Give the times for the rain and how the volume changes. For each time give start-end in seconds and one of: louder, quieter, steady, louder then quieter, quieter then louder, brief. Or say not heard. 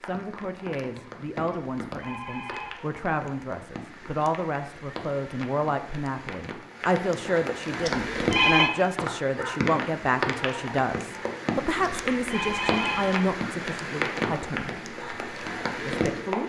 0.0-16.4 louder.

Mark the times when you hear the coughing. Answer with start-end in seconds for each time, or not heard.
not heard.